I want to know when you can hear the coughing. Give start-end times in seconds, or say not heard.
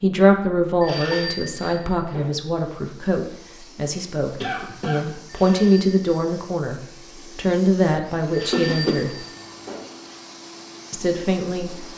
1.1-1.8, 4.4-5.1, 8.5-9.1.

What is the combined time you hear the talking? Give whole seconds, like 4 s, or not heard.
10 s.